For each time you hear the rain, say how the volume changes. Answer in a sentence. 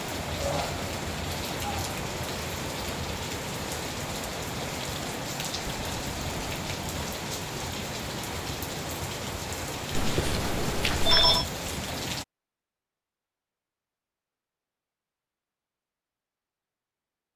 The rain can be heard from 0.0 to 12.2 s, at a steady volume.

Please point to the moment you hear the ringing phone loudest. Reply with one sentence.
The loudest moment of the ringing phone is at 11 seconds.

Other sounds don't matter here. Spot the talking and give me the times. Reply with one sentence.
The talking can't be heard in this clip.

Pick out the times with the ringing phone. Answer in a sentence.
You can hear the ringing phone from 9.9 to 11.4 s.